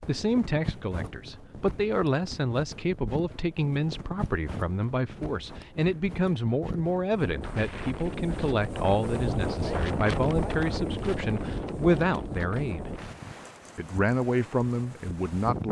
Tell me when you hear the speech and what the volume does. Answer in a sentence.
You can hear the speech from 0.1 to 12.9 s, at a steady volume; and briefly from 13.8 to 15.6 s.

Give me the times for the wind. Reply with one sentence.
You can hear the wind from 0.0 to 15.6 s.